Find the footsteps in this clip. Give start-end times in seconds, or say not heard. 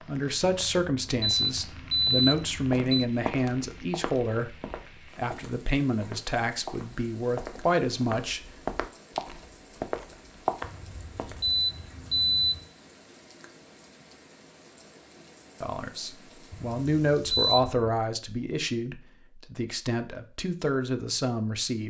2.0-11.6.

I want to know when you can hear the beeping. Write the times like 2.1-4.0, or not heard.
0.5-3.0, 10.6-12.7, 16.5-17.9.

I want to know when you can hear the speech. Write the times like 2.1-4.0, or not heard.
0.1-8.4, 15.6-21.8.